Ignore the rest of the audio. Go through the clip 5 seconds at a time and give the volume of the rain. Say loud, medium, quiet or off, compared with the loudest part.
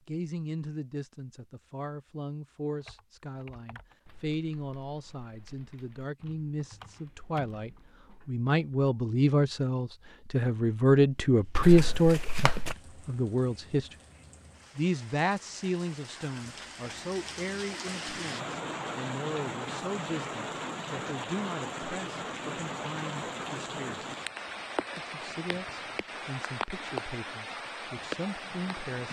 off, off, quiet, loud, loud, loud.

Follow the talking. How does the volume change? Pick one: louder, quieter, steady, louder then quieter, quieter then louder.
louder then quieter.